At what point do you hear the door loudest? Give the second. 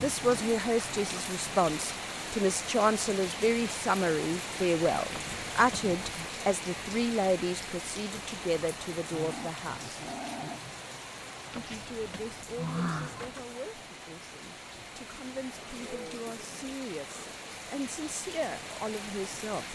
13 s.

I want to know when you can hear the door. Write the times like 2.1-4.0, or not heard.
5.1-6.3, 11.5-13.4.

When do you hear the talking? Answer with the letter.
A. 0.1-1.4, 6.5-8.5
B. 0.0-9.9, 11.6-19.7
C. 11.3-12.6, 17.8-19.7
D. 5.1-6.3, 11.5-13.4
B.